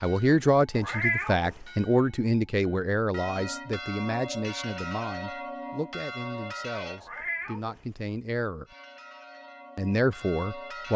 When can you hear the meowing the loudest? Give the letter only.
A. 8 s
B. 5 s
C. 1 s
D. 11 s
C.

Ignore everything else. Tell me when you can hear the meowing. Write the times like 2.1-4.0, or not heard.
0.8-1.6, 7.0-7.8.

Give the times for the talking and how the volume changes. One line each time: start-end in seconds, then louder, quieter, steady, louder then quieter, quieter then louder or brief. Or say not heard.
0.0-8.7 quieter
9.8-10.9 brief.